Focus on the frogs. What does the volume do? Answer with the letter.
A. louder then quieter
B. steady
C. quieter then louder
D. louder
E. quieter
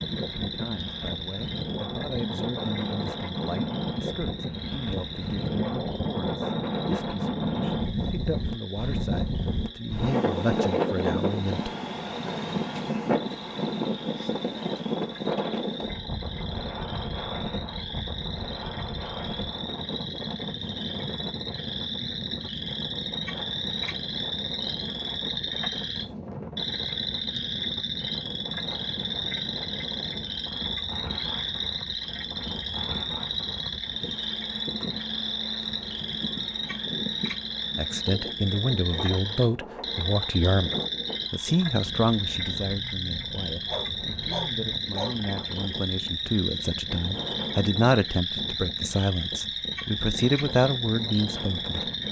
D.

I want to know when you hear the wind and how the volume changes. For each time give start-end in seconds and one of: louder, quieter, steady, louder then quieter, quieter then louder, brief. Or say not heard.
0.0-52.0 quieter.